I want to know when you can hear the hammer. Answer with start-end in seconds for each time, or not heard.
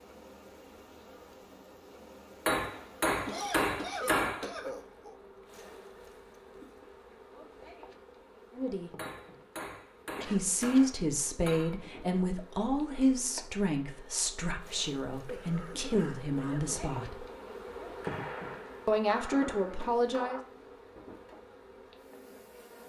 2.5-4.5, 8.9-11.8, 18.0-20.4.